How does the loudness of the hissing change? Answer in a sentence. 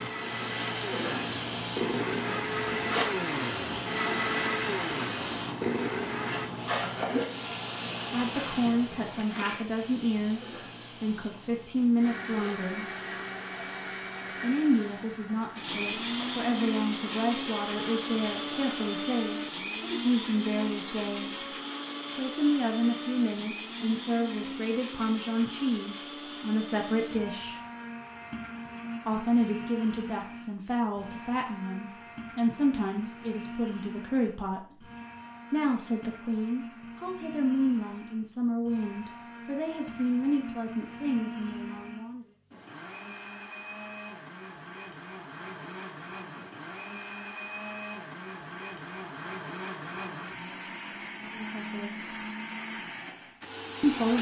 The loudness of the hissing goes down.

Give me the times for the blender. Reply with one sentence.
The blender can be heard from 0.0 to 6.5 s and from 12.0 to 54.1 s.